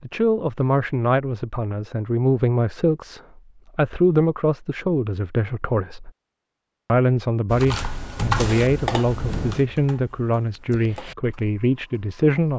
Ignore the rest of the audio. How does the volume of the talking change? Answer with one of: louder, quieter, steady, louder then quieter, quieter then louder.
steady.